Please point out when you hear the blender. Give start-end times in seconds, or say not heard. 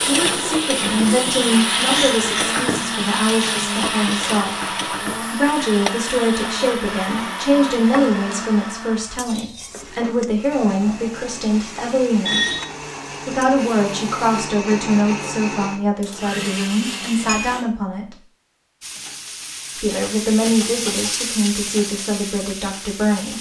0.0-17.6.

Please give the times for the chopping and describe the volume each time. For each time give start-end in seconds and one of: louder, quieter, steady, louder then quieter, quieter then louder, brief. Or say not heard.
not heard.